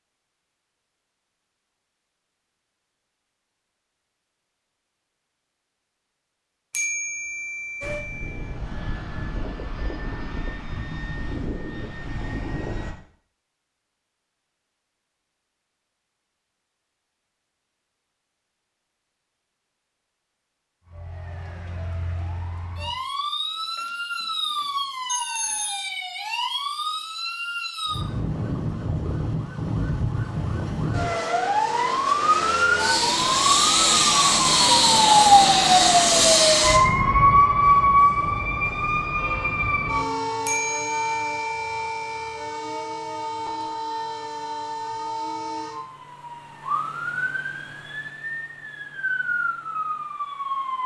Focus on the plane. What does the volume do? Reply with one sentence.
The volume of the plane stays about the same.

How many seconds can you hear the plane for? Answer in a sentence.
The plane can be heard for 5 seconds in total.